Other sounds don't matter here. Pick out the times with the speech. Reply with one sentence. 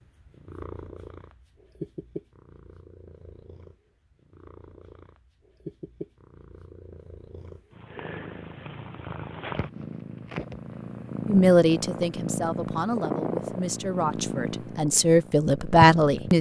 The speech can be heard from 11.2 to 16.3 s.